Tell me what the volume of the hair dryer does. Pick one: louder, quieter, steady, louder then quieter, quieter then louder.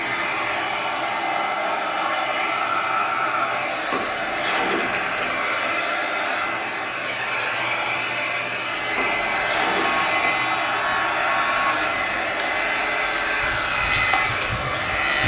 steady.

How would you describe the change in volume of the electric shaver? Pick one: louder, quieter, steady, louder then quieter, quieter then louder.
steady.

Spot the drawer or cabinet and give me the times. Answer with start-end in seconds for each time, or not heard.
3.9-5.3, 8.9-10.4.